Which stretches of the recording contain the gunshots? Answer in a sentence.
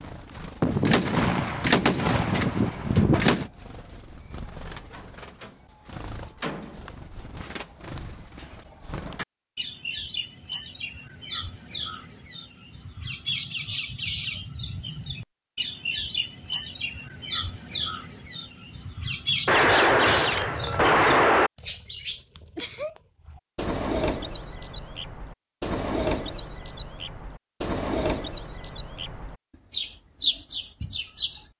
The gunshots can be heard from 0.6 to 3.5 s and from 19.4 to 21.5 s.